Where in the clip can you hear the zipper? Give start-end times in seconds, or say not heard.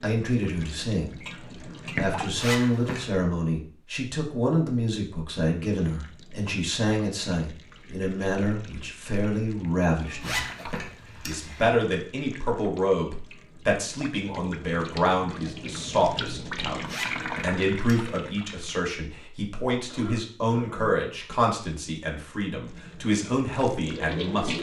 2.4-3.2, 10.2-11.7, 16.9-18.2.